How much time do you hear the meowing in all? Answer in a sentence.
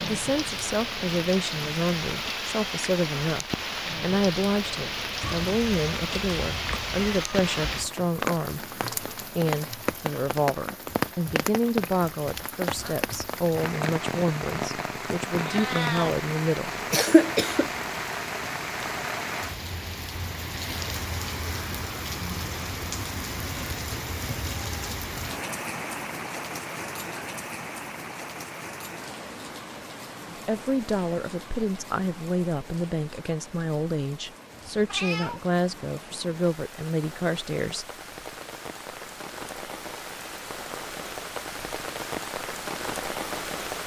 You can hear the meowing for 4 seconds altogether.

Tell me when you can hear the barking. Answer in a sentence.
The barking can't be heard in this clip.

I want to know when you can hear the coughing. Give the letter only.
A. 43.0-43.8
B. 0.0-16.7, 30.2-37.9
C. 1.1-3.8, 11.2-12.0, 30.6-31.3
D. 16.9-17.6
D.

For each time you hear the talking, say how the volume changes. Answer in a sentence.
You can hear the talking from 0.0 to 16.7 s, at a steady volume; and from 30.2 to 37.9 s, at a steady volume.